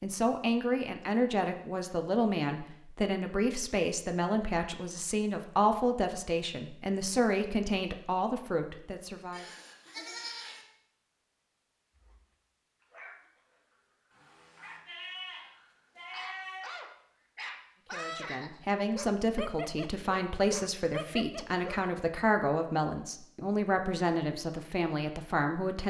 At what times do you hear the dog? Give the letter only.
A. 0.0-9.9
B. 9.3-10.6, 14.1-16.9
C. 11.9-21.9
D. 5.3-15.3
C.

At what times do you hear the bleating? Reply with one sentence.
The bleating can be heard from 9.3 to 10.6 s and from 14.1 to 16.9 s.